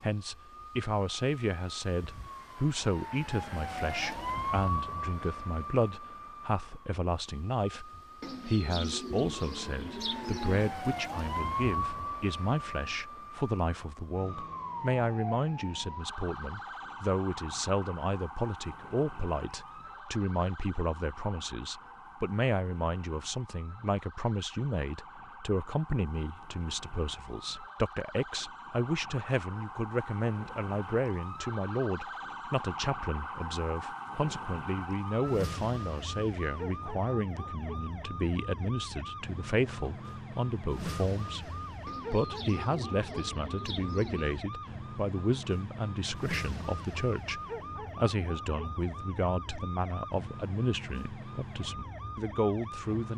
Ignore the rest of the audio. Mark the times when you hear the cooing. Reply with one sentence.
You can hear the cooing from 8.2 to 10.8 s and from 41.9 to 44.5 s.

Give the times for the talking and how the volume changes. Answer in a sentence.
You can hear the talking from 0.0 to 41.5 s, at a steady volume; and from 42.1 to 53.1 s, at a steady volume.